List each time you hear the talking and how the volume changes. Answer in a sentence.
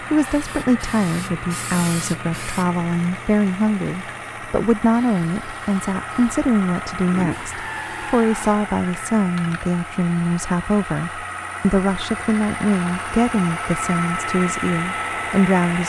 You can hear the talking from 0.1 to 15.8 s, at a steady volume.